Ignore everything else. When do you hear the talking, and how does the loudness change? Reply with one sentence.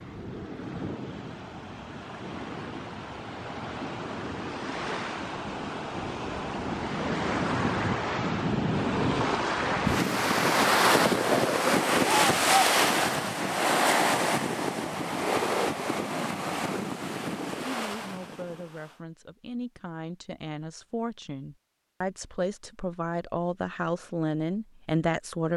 The talking can be heard from 17.6 to 25.5 s, getting louder.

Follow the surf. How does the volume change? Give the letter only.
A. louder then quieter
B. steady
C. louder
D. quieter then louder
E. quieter
A.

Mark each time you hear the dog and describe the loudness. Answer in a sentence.
The dog can't be heard in this clip.